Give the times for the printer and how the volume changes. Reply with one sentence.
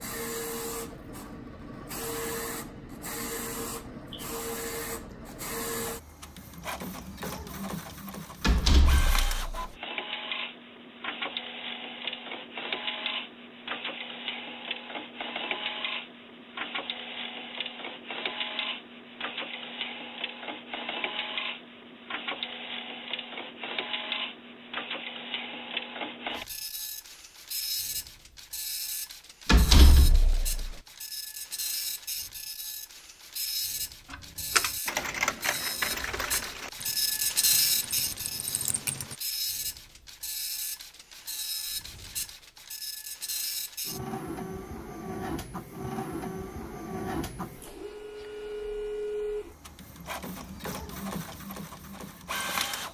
The printer can be heard from 0.0 to 52.8 s, at a steady volume.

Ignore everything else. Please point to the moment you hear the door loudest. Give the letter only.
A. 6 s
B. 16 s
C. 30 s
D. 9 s
C.